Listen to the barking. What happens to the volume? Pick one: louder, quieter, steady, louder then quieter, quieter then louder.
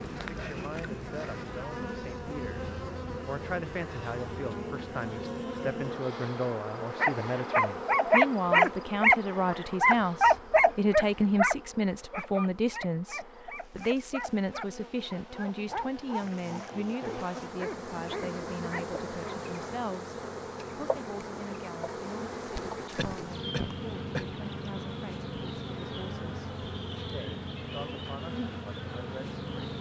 quieter.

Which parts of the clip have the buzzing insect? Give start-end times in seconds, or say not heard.
0.0-29.7.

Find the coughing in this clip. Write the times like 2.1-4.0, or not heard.
22.9-24.2.